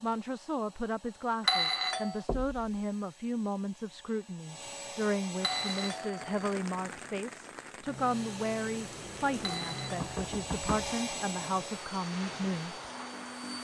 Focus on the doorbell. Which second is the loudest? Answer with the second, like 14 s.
2 s.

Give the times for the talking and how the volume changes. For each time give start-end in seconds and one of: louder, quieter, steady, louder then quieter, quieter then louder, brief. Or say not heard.
0.0-12.8 steady.